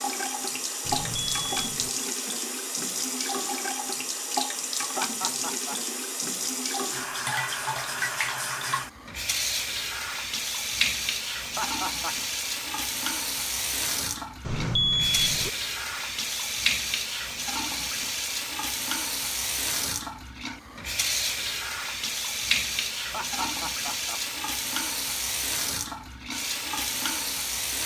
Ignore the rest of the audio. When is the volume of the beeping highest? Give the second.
15 s.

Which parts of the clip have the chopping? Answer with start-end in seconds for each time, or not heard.
not heard.